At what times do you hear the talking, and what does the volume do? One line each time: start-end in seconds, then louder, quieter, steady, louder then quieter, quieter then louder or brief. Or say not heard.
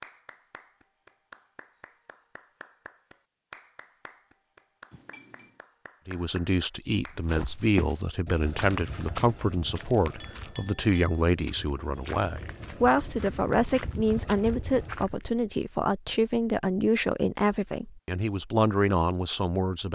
6.0-19.9 steady.